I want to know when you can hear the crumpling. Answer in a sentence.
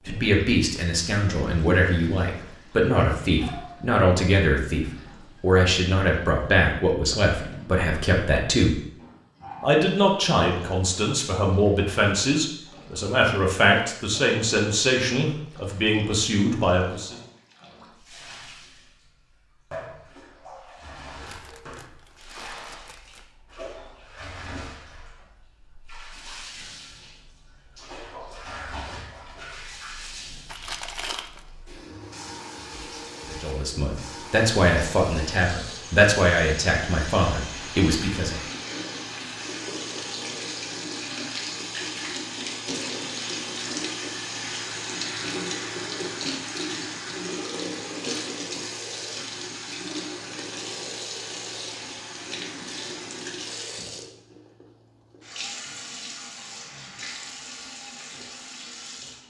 You can hear the crumpling from 21.2 to 23.2 s and from 30.4 to 31.4 s.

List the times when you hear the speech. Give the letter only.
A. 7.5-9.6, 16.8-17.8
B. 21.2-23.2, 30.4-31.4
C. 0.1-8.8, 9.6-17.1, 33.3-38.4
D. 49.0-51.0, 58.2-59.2
C.